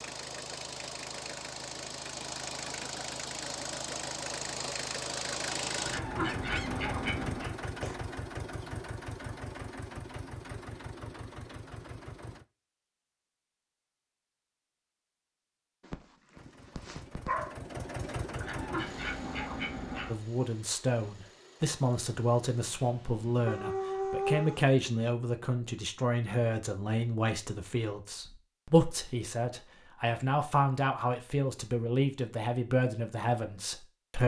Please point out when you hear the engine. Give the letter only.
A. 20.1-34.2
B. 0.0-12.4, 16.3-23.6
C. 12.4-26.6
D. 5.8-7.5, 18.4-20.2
B.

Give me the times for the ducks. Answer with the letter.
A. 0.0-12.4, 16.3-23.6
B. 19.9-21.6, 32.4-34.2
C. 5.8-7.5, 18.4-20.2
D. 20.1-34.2
C.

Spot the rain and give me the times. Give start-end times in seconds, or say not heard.
not heard.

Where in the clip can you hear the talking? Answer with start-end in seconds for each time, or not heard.
20.1-34.2.